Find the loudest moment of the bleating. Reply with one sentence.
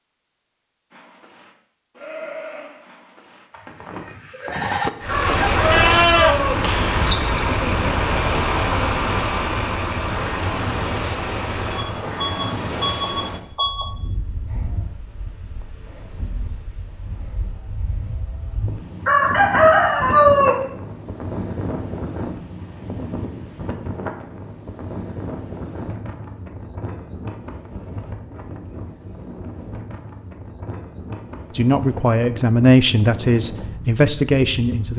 The loudest moment of the bleating is at 6 seconds.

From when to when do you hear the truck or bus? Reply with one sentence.
The truck or bus can be heard from 5.0 to 13.9 s.